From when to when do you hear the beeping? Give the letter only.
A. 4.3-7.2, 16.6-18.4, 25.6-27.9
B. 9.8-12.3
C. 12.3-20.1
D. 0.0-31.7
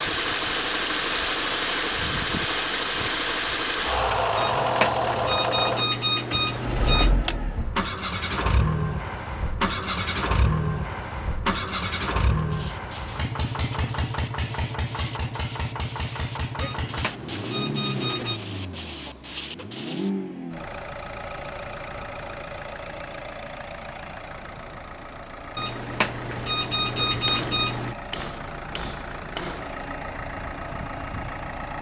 A.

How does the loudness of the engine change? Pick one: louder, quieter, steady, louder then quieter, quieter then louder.
quieter.